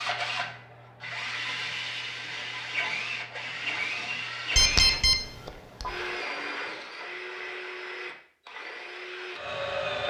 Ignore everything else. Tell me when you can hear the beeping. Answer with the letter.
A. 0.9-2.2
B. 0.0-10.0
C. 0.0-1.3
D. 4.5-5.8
D.